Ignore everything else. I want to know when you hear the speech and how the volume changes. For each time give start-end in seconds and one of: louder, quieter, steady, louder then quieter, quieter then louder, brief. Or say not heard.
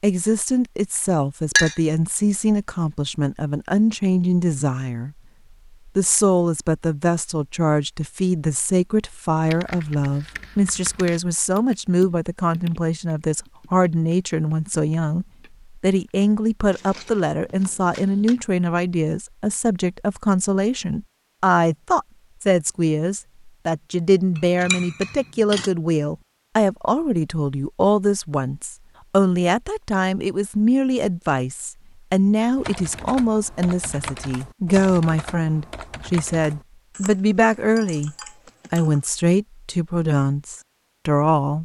0.0-5.2 steady
5.8-41.6 steady.